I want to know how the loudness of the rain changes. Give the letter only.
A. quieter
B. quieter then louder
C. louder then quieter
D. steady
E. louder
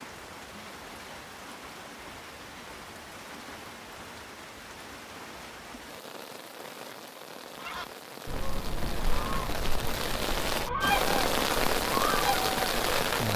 E.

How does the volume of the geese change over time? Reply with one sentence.
The loudness of the geese goes up.